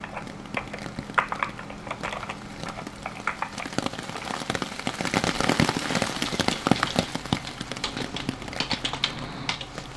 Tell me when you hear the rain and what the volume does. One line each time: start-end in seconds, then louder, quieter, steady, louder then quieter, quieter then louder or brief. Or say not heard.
0.0-9.9 louder then quieter.